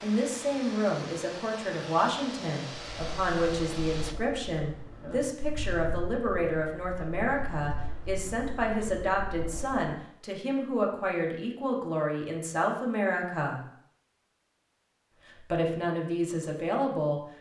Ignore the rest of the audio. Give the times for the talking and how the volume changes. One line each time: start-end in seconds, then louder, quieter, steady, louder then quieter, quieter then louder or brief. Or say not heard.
0.0-13.6 steady
15.2-17.2 brief.